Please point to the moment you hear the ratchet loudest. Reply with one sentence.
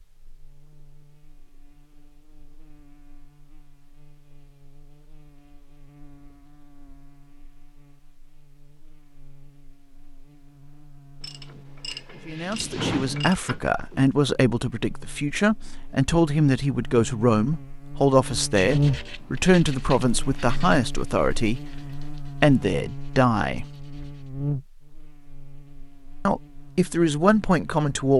The loudest moment of the ratchet is at 13 seconds.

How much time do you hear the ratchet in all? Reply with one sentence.
The ratchet can be heard for 3 seconds in total.